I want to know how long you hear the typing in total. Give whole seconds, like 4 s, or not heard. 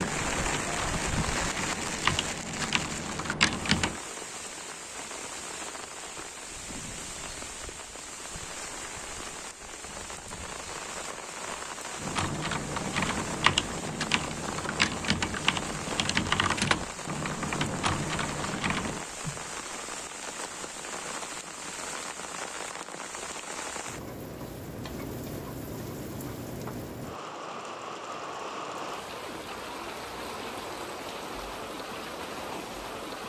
11 s.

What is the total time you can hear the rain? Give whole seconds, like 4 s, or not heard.
33 s.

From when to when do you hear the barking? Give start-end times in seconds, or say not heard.
not heard.